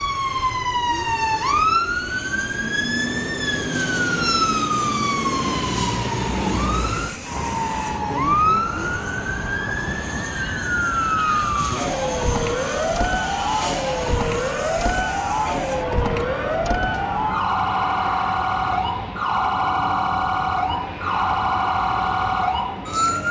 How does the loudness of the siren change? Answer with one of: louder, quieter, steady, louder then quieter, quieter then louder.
steady.